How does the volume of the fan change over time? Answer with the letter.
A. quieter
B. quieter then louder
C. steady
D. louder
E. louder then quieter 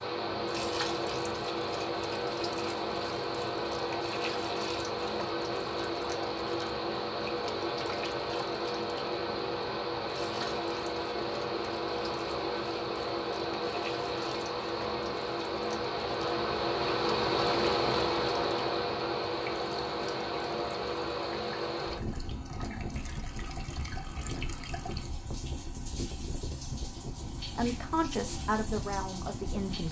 A.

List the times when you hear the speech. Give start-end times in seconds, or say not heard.
27.6-29.8.